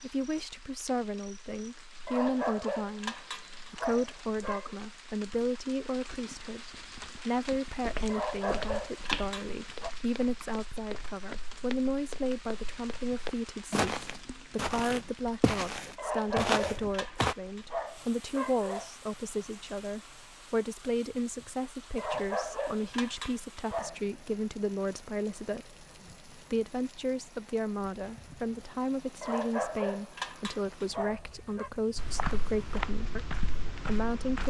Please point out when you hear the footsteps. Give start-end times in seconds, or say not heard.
7.7-17.4, 31.9-34.4.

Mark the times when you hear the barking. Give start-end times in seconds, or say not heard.
2.0-4.8, 8.1-9.9, 15.9-18.9, 21.9-23.9, 29.2-31.7.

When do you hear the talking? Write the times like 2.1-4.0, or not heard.
0.0-34.4.